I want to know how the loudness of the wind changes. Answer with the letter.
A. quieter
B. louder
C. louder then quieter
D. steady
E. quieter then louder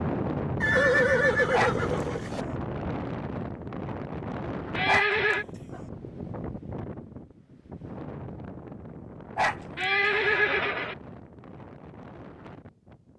A.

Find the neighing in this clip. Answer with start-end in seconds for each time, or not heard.
0.6-2.5, 4.8-5.5, 9.8-10.9.